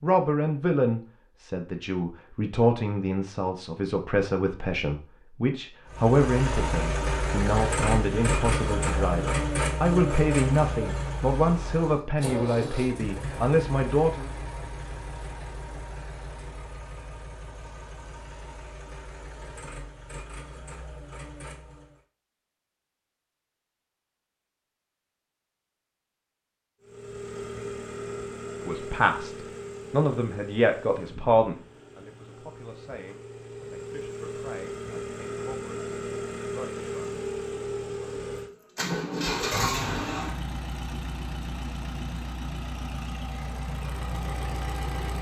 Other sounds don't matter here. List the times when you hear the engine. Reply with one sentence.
You can hear the engine from 5.8 to 22.1 s and from 26.8 to 45.1 s.